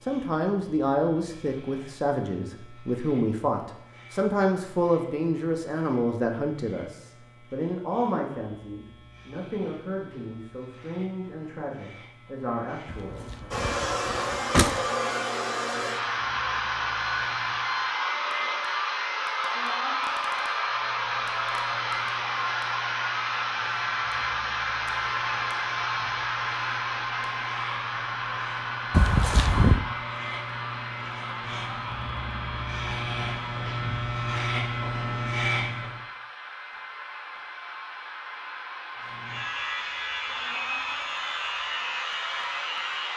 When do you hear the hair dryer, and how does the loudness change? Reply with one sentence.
The hair dryer can be heard from 13.5 to 43.1 s, getting quieter.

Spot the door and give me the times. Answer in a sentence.
The door can be heard from 12.9 to 14.8 s and from 28.9 to 29.8 s.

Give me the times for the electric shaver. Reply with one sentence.
The electric shaver can be heard from 0.0 to 17.9 s, from 20.6 to 36.0 s and from 39.0 to 43.1 s.